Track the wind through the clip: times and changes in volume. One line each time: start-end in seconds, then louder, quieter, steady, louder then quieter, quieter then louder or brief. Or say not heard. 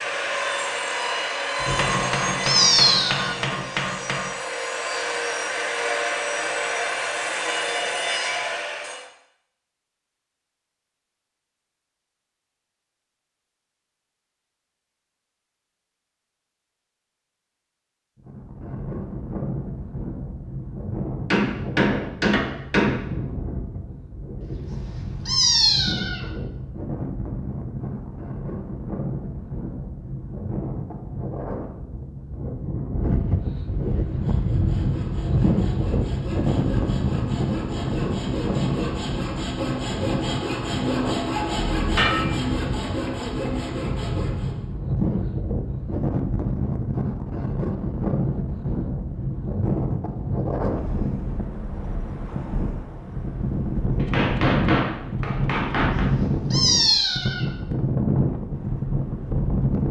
18.2-59.8 louder.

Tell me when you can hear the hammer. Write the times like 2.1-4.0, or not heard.
1.6-4.3, 21.3-23.0, 41.5-42.3, 54.0-56.1.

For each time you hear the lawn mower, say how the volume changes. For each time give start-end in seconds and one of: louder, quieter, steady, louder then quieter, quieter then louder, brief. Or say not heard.
not heard.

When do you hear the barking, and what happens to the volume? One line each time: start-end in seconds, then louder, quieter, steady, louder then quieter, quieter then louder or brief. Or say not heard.
not heard.